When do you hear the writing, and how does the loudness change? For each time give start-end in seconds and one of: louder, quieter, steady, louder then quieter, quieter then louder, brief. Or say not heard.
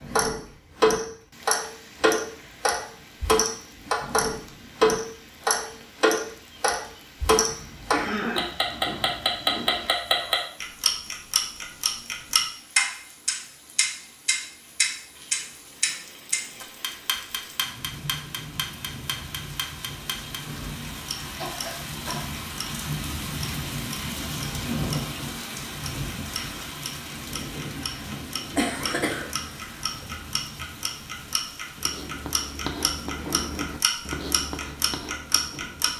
31.1-35.9 louder then quieter.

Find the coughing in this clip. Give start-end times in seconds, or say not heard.
7.5-8.6, 21.4-22.2, 27.8-29.5.